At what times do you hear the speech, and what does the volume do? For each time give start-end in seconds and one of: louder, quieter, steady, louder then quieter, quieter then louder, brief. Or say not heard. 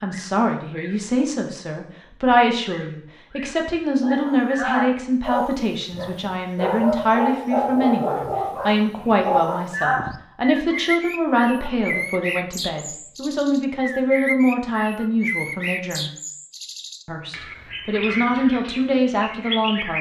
0.0-16.1 steady
17.1-19.9 brief.